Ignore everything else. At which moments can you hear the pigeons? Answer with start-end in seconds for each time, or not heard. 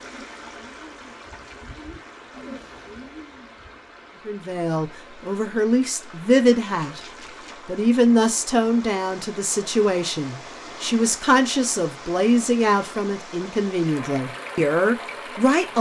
0.0-3.8.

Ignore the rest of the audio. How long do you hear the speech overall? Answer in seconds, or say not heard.
11 s.